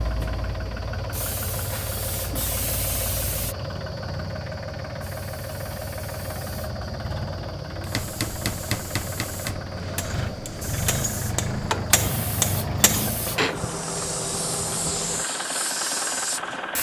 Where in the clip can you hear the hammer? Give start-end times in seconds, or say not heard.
7.9-13.6.